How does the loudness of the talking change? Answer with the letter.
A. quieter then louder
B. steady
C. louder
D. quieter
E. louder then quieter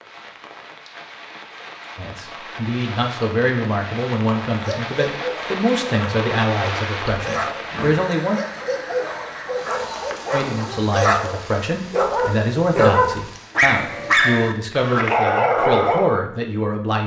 B.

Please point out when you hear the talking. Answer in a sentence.
The talking can be heard from 1.9 to 8.4 s and from 10.3 to 17.0 s.